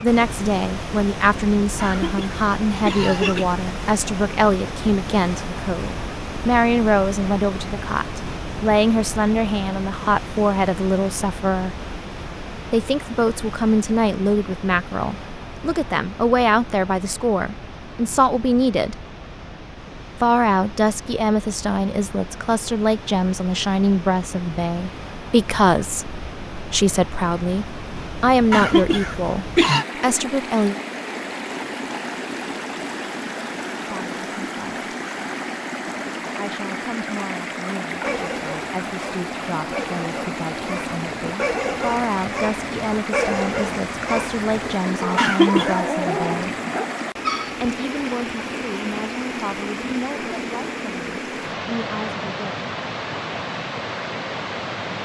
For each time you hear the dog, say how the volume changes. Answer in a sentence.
You can hear the dog from 38.0 to 47.6 s, getting louder.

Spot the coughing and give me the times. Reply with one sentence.
You can hear the coughing from 1.8 to 3.5 s, from 28.5 to 29.9 s and from 45.1 to 45.8 s.